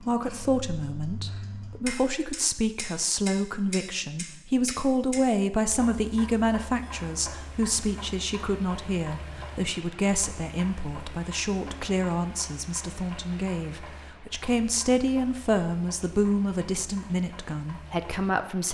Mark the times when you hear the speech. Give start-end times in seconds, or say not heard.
0.0-18.6.